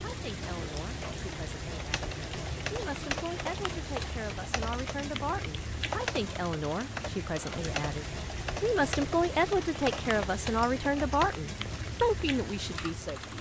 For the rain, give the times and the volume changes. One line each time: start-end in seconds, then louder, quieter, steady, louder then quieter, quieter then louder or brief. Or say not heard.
0.0-13.3 steady.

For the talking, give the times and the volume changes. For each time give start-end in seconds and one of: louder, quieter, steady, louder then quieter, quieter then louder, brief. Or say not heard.
0.0-13.3 louder.